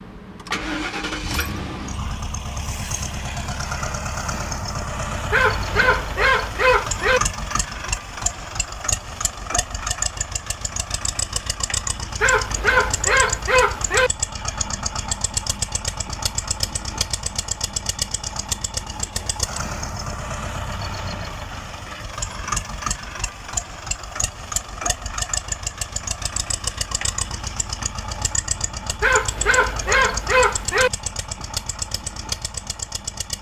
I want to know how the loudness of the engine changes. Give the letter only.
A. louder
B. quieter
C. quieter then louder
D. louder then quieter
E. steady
E.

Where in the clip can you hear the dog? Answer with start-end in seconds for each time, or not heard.
5.3-7.2, 12.2-14.1, 29.0-30.9.